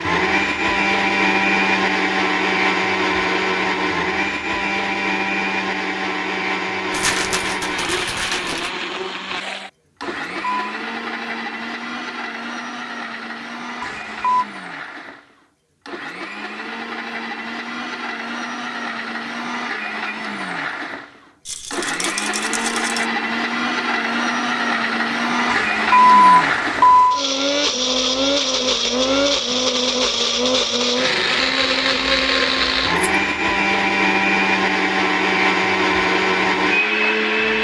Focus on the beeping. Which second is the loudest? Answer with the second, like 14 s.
26 s.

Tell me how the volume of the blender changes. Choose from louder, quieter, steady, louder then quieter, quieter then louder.
quieter then louder.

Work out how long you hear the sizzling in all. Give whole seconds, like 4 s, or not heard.
not heard.